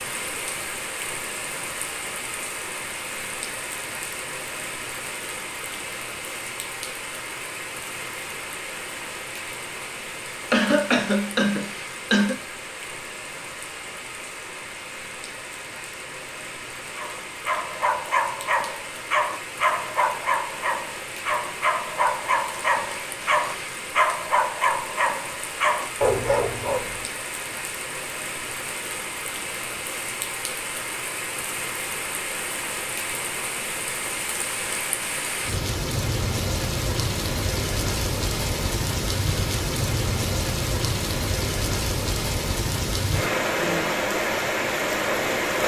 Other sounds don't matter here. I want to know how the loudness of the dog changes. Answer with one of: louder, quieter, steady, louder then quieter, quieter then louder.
steady.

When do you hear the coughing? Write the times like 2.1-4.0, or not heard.
10.5-12.3.